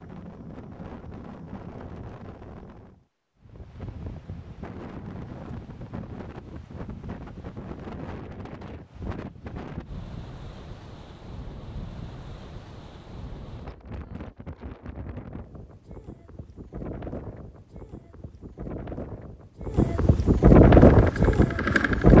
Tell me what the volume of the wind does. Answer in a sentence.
The loudness of the wind goes up.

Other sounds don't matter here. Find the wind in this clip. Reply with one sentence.
The wind can be heard from 0.0 to 22.1 s.